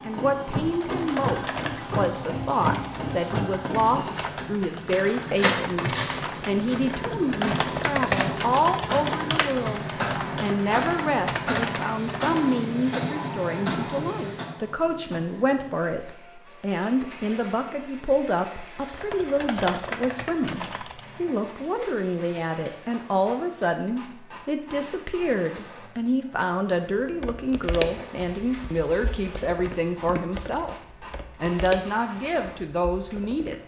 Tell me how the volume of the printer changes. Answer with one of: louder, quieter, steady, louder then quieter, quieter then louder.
quieter.